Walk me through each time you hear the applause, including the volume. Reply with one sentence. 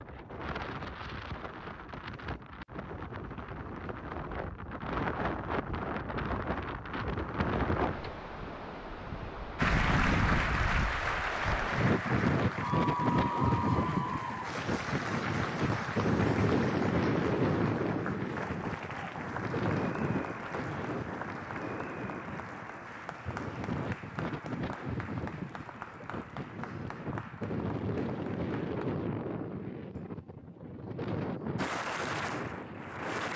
The applause can be heard from 9.6 to 28.9 s, getting quieter; and briefly from 31.6 to 33.3 s.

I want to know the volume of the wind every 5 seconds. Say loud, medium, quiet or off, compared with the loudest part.
medium, loud, loud, loud, medium, medium, medium.